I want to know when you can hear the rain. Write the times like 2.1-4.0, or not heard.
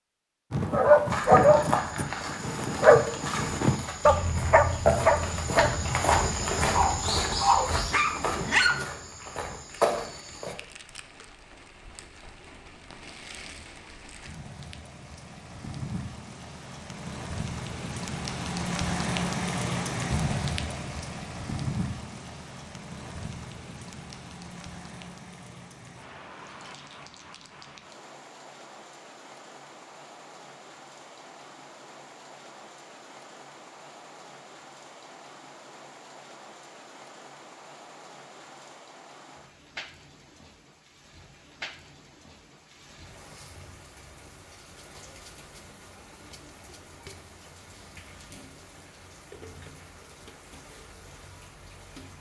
9.7-52.1.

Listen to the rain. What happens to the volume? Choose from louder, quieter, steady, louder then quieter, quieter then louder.
louder then quieter.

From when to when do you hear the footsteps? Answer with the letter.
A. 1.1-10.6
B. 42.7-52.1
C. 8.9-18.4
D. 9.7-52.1
A.